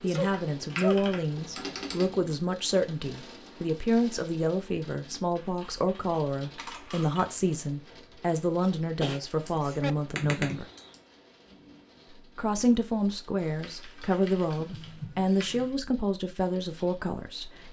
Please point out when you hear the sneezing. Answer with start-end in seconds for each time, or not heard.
0.0-1.4, 8.7-9.9, 14.6-15.7.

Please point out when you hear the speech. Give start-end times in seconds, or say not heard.
0.0-10.7, 12.1-17.6.